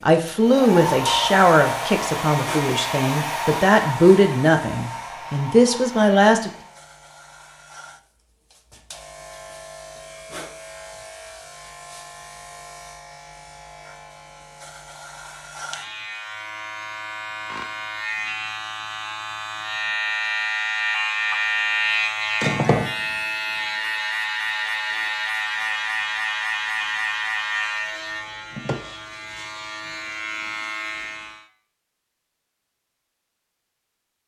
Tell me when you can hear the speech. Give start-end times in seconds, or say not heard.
0.0-6.5.